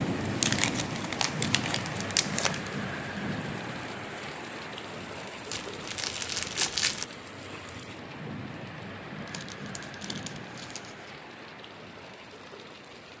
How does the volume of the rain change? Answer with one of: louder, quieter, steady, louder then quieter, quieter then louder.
quieter.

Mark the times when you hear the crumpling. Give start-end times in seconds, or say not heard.
0.4-2.8, 5.5-7.0, 9.2-11.1.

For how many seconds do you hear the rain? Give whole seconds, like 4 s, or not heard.
13 s.